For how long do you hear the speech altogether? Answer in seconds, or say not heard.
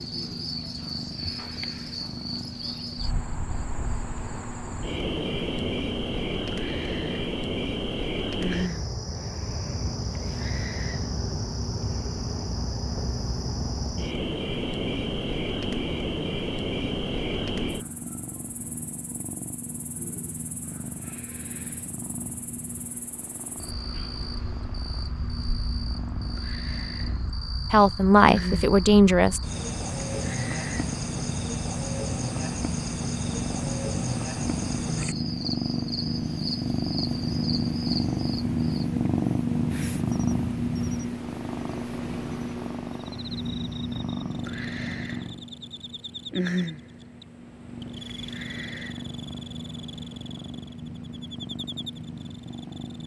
2 s.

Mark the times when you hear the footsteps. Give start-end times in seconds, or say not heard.
not heard.